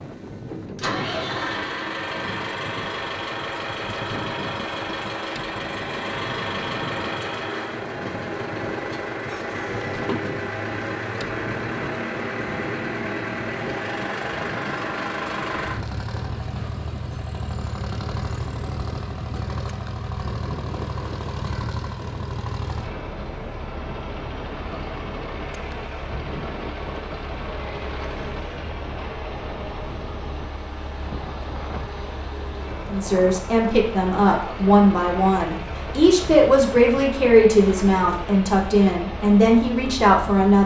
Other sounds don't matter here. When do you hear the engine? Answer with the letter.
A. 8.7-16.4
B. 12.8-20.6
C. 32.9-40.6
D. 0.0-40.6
D.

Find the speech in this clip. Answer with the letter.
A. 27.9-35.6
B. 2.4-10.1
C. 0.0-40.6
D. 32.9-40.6
D.